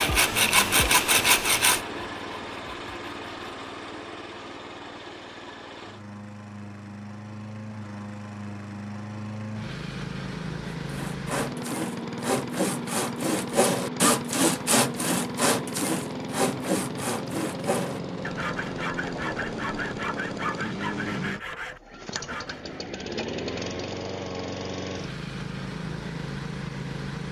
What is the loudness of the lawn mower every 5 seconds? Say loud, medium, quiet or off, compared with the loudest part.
loud, medium, loud, loud, loud, loud.